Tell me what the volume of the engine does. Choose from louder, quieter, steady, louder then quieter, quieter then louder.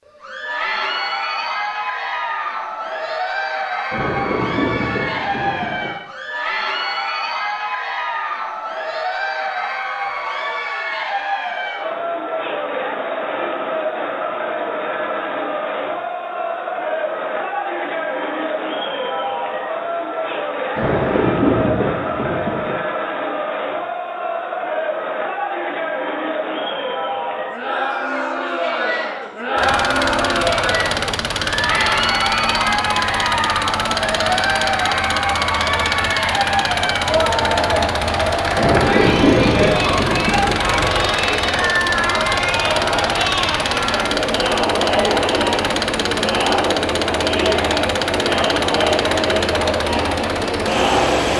steady.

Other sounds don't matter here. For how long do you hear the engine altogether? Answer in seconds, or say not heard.
22 s.